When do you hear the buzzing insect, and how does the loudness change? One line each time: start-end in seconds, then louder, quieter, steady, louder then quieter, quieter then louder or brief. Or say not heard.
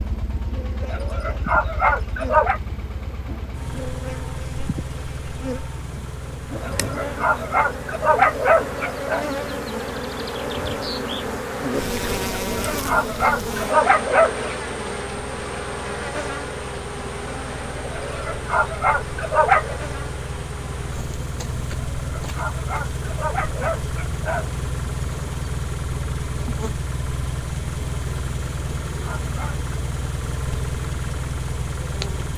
0.0-32.3 louder then quieter.